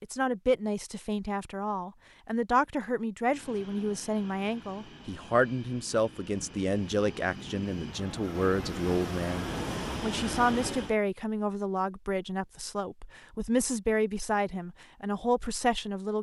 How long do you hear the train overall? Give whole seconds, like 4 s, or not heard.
8 s.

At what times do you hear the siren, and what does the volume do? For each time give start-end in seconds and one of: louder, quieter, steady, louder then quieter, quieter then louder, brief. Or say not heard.
not heard.